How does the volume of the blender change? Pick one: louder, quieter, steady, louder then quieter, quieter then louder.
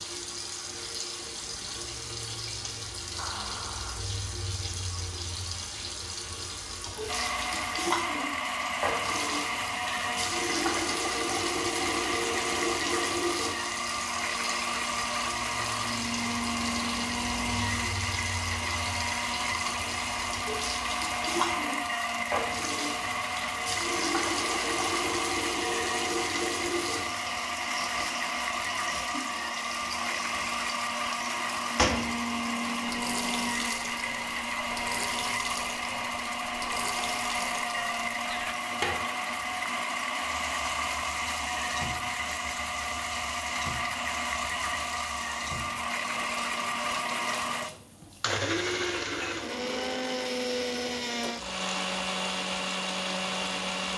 steady.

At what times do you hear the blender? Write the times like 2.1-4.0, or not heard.
7.0-53.9.